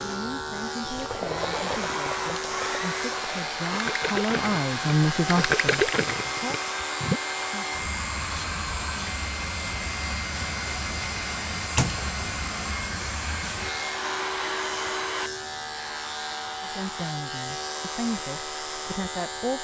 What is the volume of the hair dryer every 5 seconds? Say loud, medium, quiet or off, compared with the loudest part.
loud, loud, loud, medium.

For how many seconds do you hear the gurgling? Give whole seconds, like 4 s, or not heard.
6 s.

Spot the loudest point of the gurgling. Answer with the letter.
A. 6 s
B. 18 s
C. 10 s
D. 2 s
A.